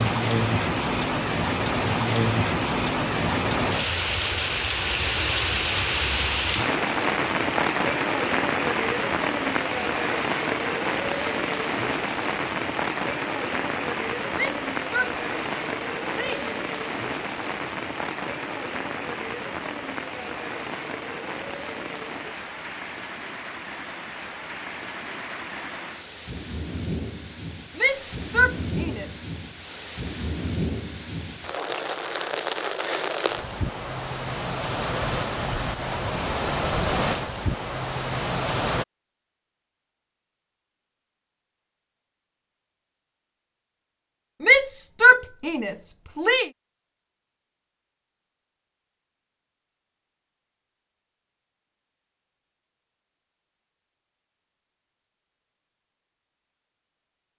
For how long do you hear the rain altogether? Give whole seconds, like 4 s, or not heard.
39 s.